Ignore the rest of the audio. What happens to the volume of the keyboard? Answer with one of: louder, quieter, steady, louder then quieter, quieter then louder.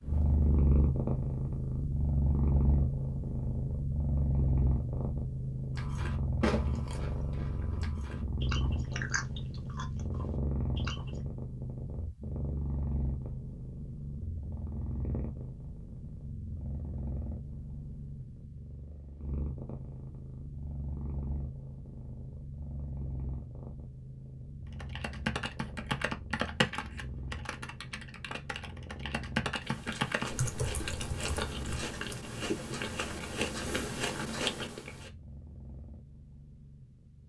quieter then louder.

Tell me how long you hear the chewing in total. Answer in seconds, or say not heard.
11 s.